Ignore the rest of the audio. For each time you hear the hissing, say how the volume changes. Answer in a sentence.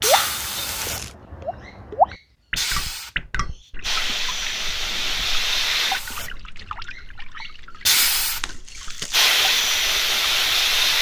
You can hear the hissing from 0.0 to 10.9 s, getting louder.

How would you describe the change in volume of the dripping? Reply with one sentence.
The volume of the dripping goes down.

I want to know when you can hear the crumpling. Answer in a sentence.
You can hear the crumpling from 0.1 to 1.1 s and from 8.0 to 9.3 s.